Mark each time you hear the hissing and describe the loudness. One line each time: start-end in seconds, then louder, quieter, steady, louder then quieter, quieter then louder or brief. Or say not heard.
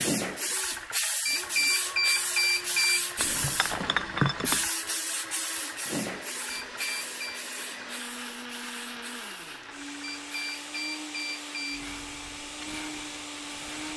0.0-13.9 quieter.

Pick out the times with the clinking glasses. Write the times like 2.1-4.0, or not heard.
3.1-4.7.